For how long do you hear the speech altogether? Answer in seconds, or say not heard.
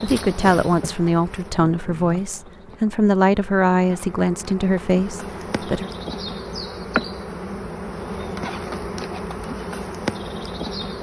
6 s.